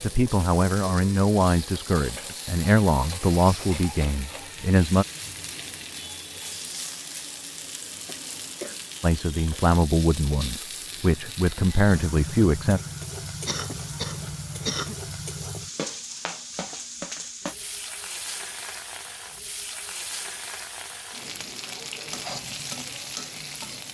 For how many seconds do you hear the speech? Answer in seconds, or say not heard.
9 s.